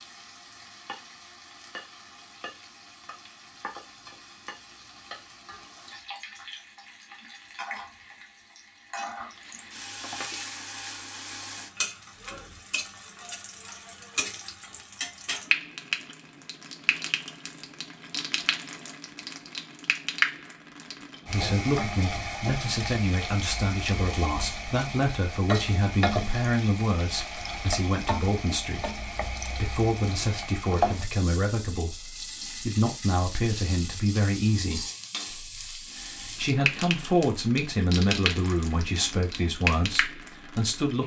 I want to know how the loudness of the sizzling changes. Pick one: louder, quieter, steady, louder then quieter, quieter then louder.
louder.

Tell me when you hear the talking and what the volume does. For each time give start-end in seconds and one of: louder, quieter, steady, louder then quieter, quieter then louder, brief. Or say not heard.
21.2-41.0 steady.